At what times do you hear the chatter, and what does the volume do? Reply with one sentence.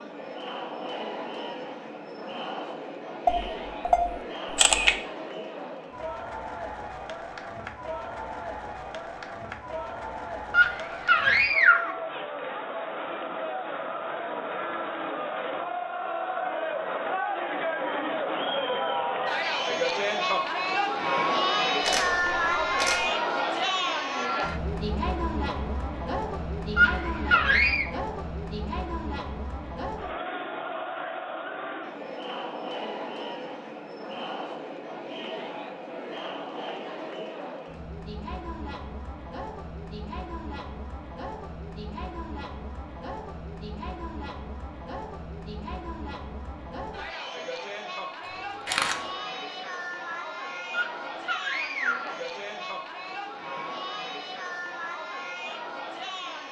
You can hear the chatter from 0.0 to 56.4 s, getting louder then quieter.